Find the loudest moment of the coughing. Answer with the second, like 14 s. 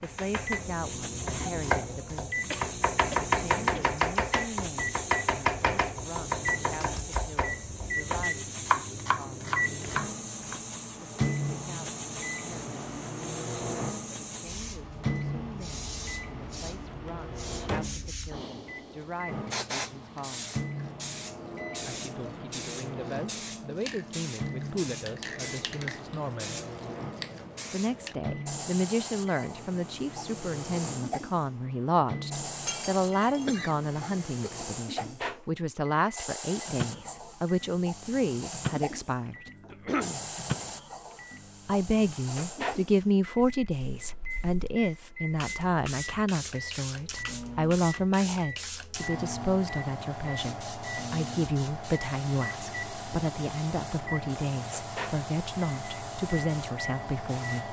40 s.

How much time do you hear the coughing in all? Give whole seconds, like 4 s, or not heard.
3 s.